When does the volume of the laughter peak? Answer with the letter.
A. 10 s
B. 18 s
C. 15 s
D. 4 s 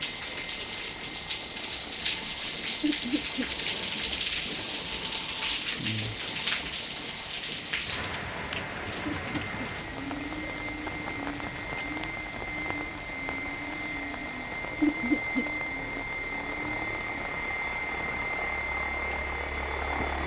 C.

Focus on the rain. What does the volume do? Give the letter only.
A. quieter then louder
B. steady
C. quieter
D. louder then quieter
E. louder
C.